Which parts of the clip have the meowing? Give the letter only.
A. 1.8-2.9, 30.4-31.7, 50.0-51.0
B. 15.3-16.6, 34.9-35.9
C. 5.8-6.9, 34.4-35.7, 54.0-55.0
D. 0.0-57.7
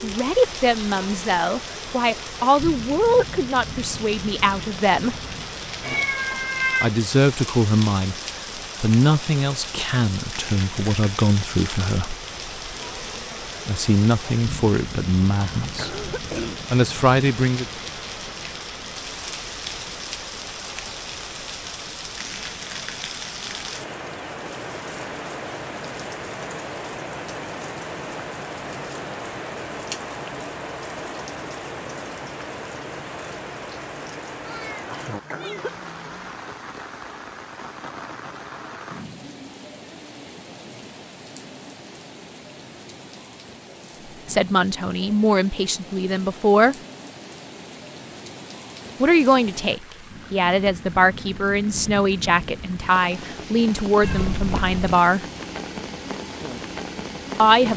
C.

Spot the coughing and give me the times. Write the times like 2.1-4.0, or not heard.
15.3-16.6, 34.9-35.9.